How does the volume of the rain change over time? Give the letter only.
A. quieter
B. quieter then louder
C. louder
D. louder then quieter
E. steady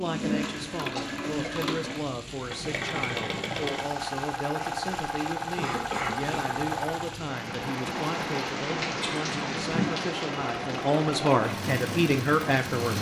D.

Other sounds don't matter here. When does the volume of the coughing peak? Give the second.
6 s.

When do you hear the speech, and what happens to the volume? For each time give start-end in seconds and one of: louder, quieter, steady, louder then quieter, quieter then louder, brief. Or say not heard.
0.0-12.9 louder.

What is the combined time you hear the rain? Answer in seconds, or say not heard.
13 s.